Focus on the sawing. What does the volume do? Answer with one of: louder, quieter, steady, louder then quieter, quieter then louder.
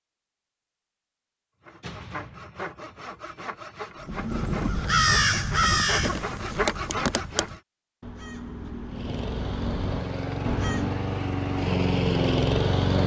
louder.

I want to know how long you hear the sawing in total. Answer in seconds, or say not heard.
6 s.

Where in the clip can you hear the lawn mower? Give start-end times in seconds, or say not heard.
8.8-13.0.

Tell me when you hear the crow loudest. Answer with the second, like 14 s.
5 s.